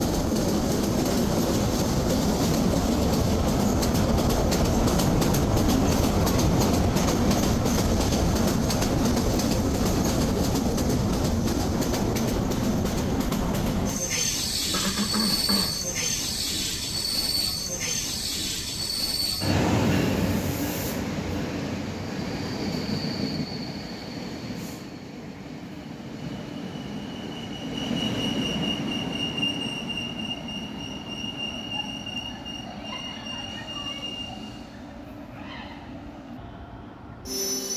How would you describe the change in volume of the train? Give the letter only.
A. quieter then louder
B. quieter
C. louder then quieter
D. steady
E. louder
B.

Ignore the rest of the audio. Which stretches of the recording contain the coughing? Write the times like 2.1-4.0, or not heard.
14.7-15.8.